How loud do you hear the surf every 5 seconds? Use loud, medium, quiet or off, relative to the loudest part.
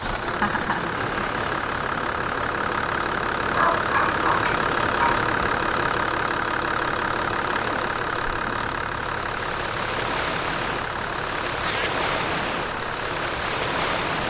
medium, medium, loud.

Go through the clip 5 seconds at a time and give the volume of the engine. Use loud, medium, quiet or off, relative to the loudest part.
loud, loud, medium.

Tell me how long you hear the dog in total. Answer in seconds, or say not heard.
2 s.